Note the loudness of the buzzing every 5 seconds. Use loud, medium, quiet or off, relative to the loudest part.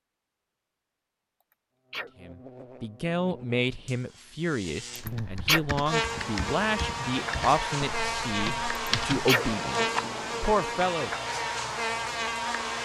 quiet, loud, loud.